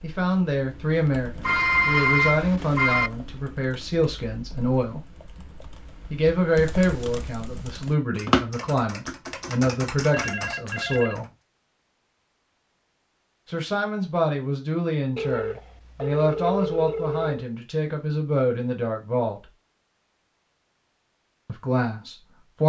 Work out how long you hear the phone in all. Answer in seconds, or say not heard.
5 s.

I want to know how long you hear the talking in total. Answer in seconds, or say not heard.
17 s.